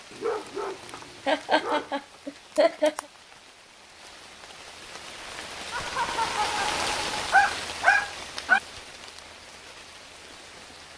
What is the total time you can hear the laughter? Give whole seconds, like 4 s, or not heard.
3 s.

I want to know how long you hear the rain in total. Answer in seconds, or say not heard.
11 s.